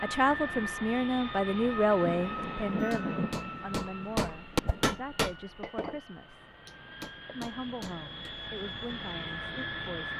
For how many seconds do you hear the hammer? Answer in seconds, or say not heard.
5 s.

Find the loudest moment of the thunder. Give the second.
3 s.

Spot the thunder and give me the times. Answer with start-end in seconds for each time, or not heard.
2.0-5.0.